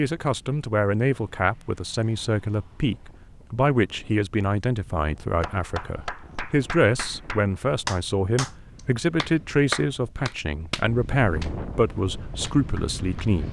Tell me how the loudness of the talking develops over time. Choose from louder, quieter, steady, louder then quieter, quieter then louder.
steady.